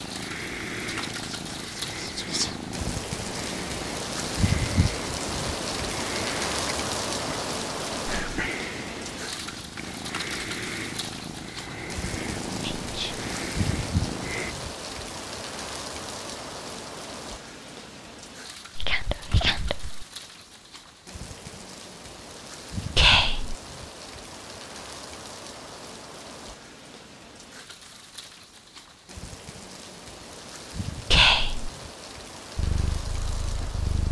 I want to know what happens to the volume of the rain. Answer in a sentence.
The loudness of the rain goes down.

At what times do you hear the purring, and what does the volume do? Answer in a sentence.
You can hear the purring from 0.0 to 14.6 s, at a steady volume; and briefly from 32.5 to 34.0 s.